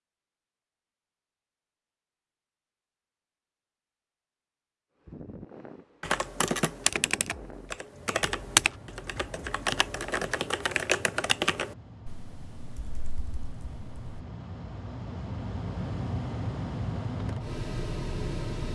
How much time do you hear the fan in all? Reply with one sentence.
The fan can be heard for 14 seconds in total.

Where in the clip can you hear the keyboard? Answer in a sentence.
The keyboard can be heard from 6.0 to 14.2 s.